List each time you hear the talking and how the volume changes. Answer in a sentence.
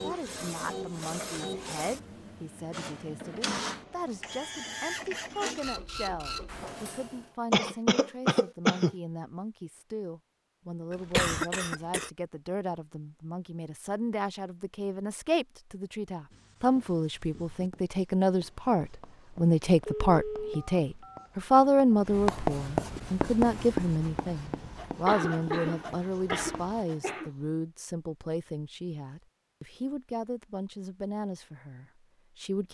The talking can be heard from 0.0 to 32.6 s, getting louder then quieter.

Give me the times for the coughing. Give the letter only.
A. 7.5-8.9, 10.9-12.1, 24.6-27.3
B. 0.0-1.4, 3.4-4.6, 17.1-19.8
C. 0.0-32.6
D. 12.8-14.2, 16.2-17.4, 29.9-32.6
A.